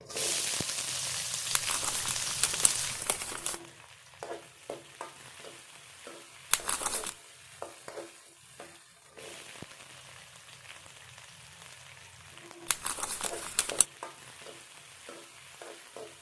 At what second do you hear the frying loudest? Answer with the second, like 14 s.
1 s.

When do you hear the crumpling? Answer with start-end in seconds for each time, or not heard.
1.5-3.6, 6.5-7.2, 12.7-13.8.